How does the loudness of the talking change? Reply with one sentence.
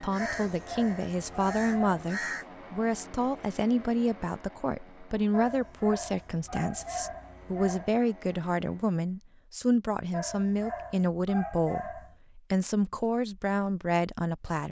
The loudness of the talking stays about the same.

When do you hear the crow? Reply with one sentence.
You can hear the crow from 0.0 to 2.5 s.